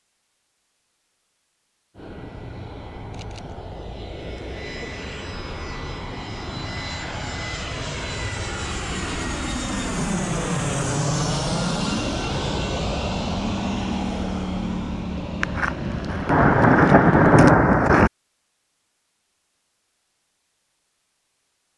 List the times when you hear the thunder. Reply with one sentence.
The thunder can be heard from 15.4 to 18.1 s.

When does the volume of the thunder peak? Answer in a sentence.
The loudest moment of the thunder is at 17 seconds.